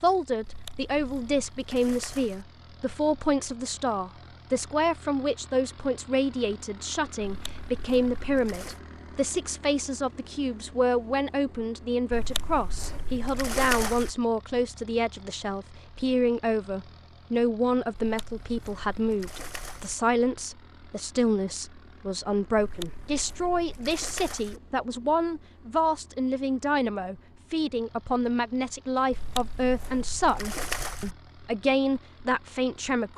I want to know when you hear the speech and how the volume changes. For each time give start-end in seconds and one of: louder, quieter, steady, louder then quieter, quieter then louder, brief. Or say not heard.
0.0-33.1 steady.